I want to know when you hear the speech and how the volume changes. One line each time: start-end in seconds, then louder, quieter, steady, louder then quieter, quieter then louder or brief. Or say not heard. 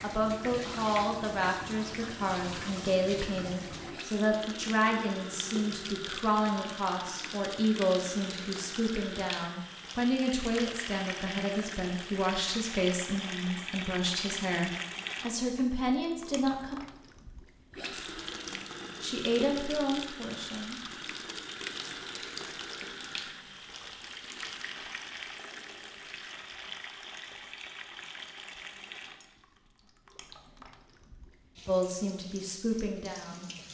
0.0-16.8 steady
19.0-21.0 brief
31.6-33.5 brief.